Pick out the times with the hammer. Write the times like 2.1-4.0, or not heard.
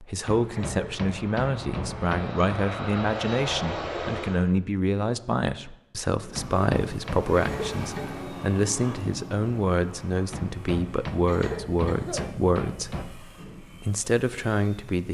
0.2-2.4, 6.3-7.7, 10.3-13.2.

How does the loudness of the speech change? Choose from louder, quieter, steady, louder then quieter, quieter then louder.
steady.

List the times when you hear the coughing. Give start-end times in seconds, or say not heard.
0.6-1.0, 7.3-8.2, 11.2-12.4.